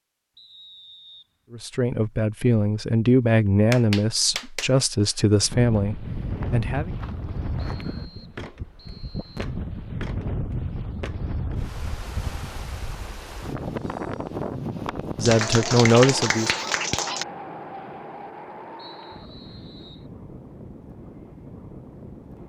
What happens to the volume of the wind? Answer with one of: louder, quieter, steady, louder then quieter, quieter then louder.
quieter.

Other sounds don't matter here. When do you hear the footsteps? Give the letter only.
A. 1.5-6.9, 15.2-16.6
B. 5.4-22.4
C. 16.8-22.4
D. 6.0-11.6
D.